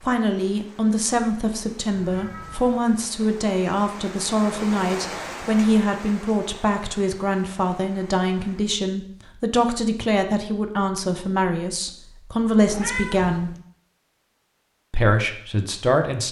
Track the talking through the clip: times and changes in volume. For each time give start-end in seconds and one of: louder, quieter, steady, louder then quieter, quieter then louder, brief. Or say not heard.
0.0-13.5 steady
14.9-16.2 brief.